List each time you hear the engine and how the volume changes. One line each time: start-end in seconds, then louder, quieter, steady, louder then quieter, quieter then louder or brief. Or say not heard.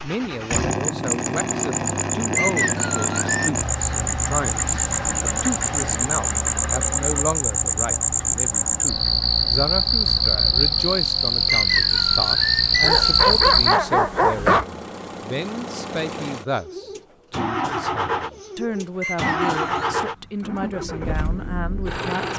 0.0-22.3 quieter then louder.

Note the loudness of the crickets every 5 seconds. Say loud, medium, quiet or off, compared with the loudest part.
medium, loud, loud, off, off.